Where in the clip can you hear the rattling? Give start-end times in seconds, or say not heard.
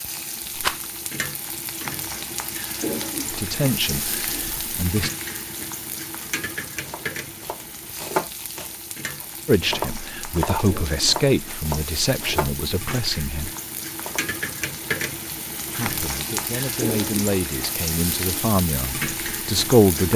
0.6-1.0.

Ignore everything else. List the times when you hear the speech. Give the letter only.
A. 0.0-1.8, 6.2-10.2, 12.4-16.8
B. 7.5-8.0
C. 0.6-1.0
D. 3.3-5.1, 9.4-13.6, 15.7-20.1
D.